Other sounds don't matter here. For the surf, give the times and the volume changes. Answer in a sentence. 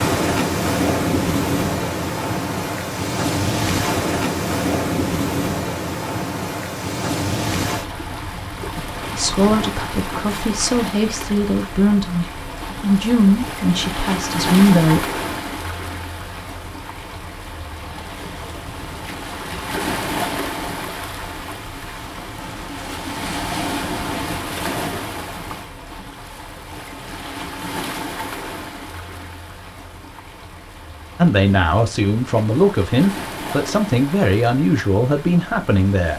The surf can be heard from 0.0 to 36.1 s, getting quieter.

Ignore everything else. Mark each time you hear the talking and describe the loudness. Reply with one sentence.
You can hear the talking from 9.2 to 15.1 s, getting louder; and from 31.1 to 36.1 s, at a steady volume.